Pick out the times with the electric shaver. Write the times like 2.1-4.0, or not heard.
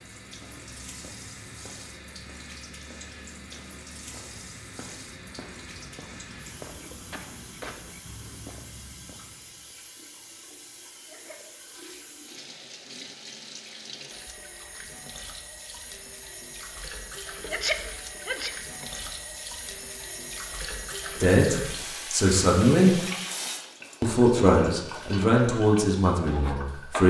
not heard.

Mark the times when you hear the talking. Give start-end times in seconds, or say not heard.
21.2-22.9, 24.0-27.0.